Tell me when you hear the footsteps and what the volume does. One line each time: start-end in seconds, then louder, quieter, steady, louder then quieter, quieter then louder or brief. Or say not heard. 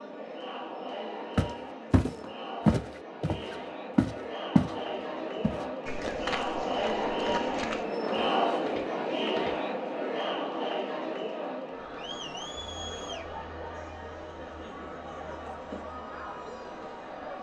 1.4-9.6 quieter.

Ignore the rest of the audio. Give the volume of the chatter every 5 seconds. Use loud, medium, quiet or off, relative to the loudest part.
medium, loud, medium, medium.